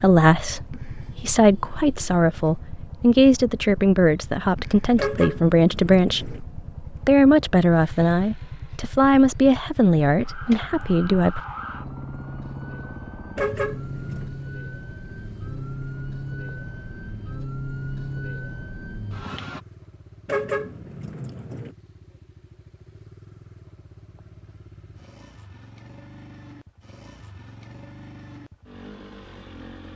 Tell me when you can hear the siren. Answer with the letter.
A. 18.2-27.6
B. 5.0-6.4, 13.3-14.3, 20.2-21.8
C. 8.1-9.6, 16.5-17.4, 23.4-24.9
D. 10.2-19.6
D.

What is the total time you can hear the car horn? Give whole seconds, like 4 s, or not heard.
4 s.